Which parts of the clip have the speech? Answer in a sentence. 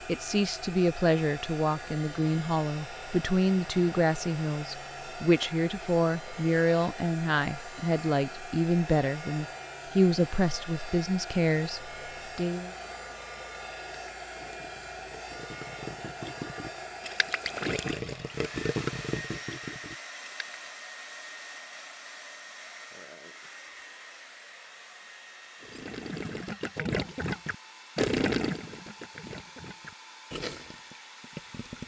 The speech can be heard from 0.1 to 12.7 s.